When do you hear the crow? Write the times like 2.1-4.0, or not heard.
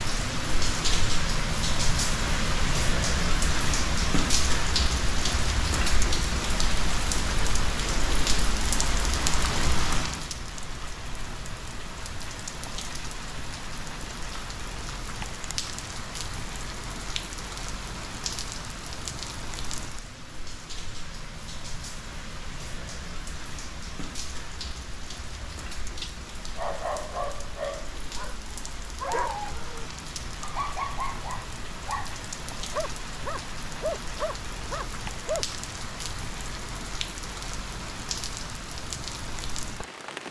not heard.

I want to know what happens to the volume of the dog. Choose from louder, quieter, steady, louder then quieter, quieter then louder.
steady.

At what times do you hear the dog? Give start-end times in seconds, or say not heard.
25.4-35.5.